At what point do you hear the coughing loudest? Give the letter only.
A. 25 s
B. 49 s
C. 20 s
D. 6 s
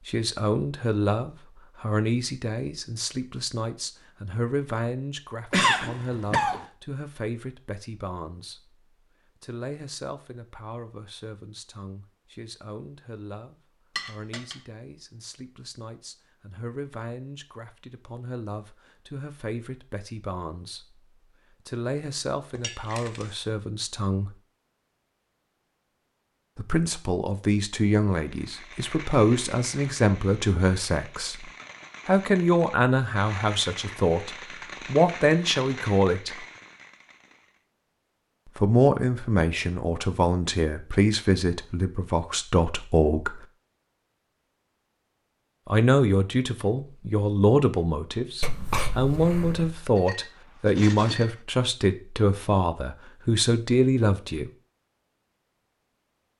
D.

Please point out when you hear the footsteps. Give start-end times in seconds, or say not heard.
not heard.